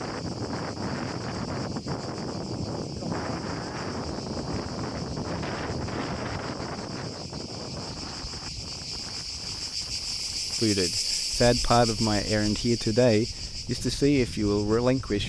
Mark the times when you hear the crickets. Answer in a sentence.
You can hear the crickets from 0.0 to 15.2 s.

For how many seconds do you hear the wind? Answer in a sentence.
The wind can be heard for 15 seconds in total.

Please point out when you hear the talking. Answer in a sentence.
You can hear the talking from 10.6 to 15.2 s.